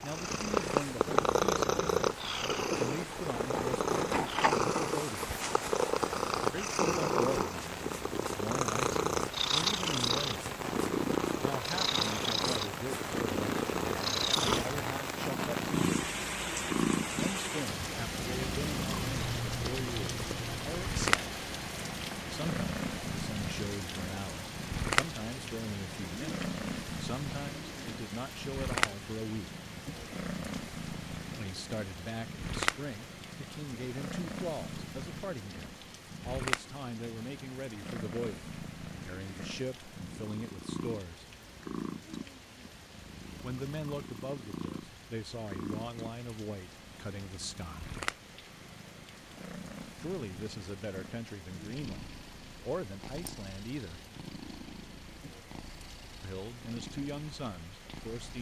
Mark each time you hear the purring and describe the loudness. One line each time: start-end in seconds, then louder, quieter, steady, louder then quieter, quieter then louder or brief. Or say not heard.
0.0-58.3 quieter.